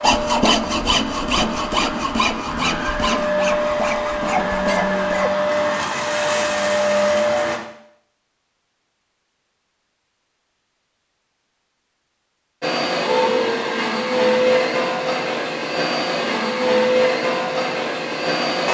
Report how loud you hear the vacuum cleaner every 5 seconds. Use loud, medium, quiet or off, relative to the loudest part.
medium, loud, loud, loud.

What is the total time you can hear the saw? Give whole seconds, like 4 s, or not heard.
5 s.